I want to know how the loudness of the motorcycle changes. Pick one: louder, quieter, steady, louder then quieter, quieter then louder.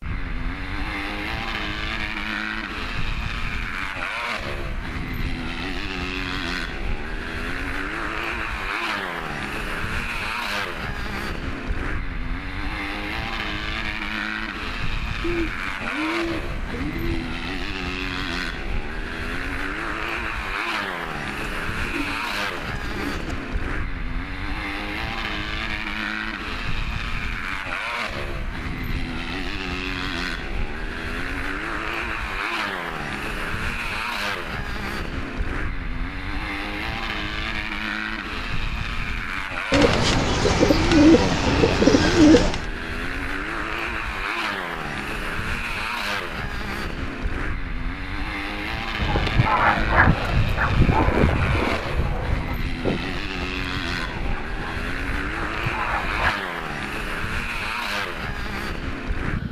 steady.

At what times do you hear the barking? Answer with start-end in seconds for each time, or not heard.
49.0-56.4.